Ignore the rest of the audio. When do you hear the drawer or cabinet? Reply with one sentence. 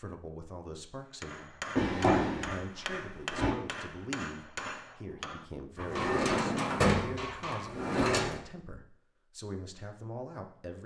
You can hear the drawer or cabinet from 1.8 to 3.5 s and from 5.8 to 8.4 s.